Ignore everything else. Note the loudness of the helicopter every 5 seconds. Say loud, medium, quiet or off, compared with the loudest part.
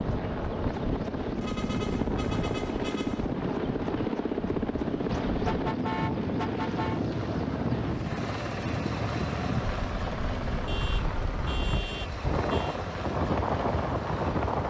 loud, loud, medium.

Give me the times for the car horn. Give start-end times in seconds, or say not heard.
1.4-3.4, 5.4-7.0, 10.7-12.8.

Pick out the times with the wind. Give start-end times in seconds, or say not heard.
0.0-14.6.